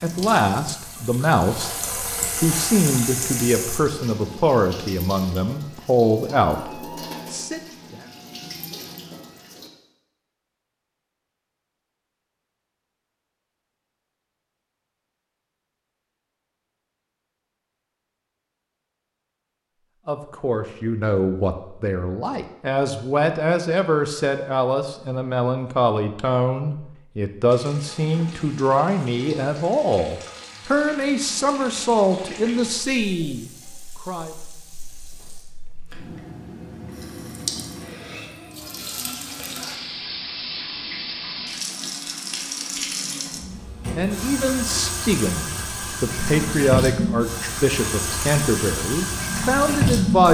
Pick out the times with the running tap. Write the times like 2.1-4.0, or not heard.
0.0-9.7, 27.4-50.2.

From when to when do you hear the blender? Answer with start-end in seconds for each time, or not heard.
not heard.